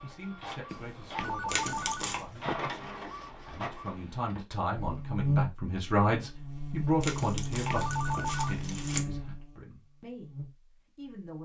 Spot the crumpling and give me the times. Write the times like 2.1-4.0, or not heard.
1.4-2.2, 7.0-9.0.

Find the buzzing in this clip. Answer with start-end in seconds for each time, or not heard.
4.8-11.2.